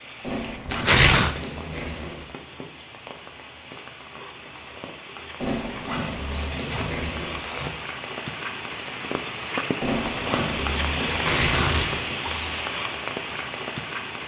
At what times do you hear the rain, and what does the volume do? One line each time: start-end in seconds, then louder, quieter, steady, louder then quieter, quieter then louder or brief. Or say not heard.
0.0-14.2 louder.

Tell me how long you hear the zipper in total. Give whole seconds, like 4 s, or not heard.
6 s.